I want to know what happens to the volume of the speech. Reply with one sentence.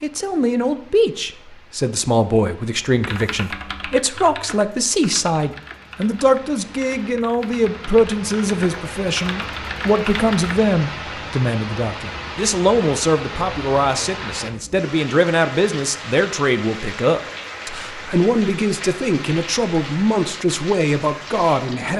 The loudness of the speech stays about the same.